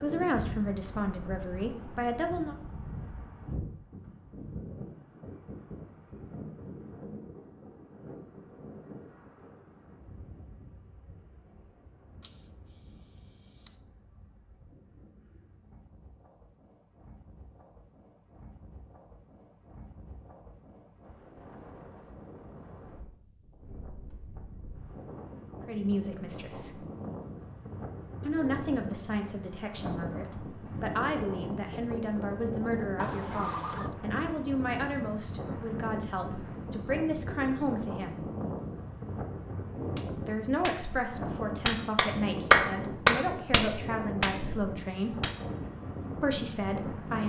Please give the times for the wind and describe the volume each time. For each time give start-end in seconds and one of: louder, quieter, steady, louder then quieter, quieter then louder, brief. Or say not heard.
0.0-47.2 quieter then louder.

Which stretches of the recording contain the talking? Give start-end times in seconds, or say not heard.
0.0-2.5, 25.6-26.9, 28.2-38.2, 40.2-45.2, 46.2-47.2.